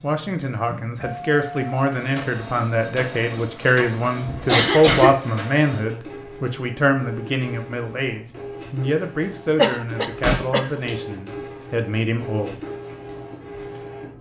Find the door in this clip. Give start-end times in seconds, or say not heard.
4.2-5.2, 10.2-10.9.